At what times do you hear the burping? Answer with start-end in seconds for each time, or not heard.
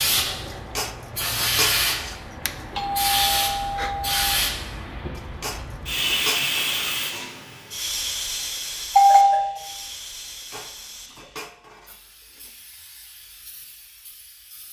not heard.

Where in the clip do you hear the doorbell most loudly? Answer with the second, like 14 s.
9 s.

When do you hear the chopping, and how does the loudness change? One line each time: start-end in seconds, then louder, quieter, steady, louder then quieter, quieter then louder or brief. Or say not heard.
not heard.